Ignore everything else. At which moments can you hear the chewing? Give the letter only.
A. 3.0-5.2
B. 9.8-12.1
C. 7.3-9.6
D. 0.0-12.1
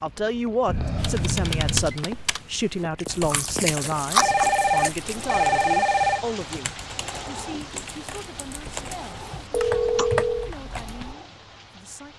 A.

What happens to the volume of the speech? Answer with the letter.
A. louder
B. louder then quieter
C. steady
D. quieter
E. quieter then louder
D.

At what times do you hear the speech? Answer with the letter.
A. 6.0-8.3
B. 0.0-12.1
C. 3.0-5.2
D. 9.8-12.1
B.